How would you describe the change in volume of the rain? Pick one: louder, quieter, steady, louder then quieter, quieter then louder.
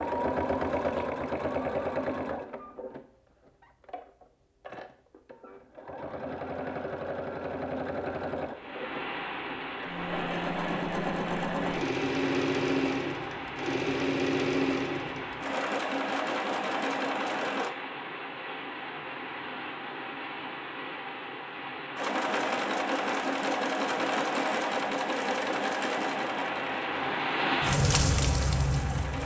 louder.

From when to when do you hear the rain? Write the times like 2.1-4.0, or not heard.
8.5-29.2.